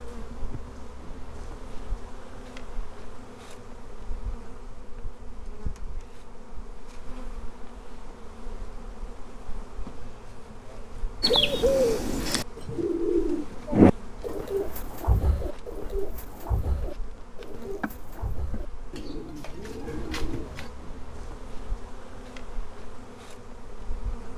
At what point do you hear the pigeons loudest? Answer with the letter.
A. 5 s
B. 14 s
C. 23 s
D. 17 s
B.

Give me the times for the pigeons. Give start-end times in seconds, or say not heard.
11.2-20.7.